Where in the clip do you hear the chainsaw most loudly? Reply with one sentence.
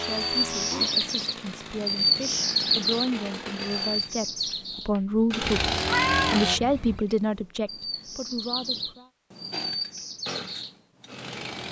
The volume of the chainsaw peaks at 6 seconds.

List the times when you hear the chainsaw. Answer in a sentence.
The chainsaw can be heard from 0.0 to 6.6 s and from 9.5 to 11.6 s.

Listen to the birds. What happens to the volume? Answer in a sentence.
The loudness of the birds goes down.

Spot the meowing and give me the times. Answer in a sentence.
You can hear the meowing from 5.5 to 7.0 s.